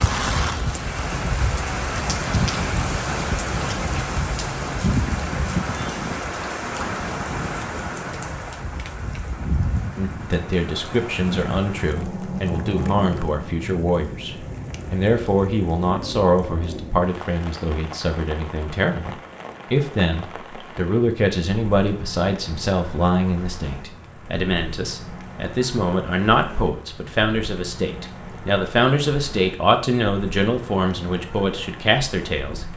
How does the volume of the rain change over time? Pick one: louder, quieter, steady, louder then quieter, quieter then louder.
quieter.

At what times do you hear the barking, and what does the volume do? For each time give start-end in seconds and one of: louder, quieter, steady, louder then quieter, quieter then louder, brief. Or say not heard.
not heard.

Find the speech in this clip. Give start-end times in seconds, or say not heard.
9.9-32.6.